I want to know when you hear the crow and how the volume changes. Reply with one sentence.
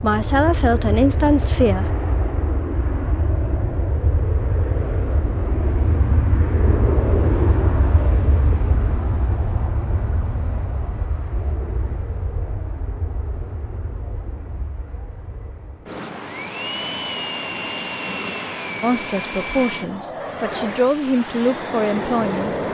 You can't hear the crow here.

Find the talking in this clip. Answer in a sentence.
You can hear the talking from 0.0 to 1.9 s and from 18.8 to 22.6 s.